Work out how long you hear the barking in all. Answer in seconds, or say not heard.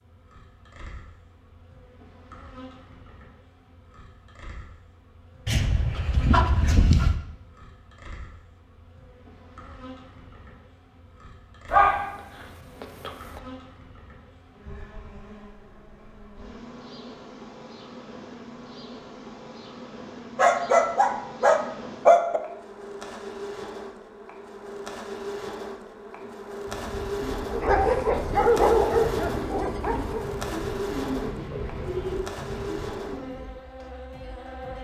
8 s.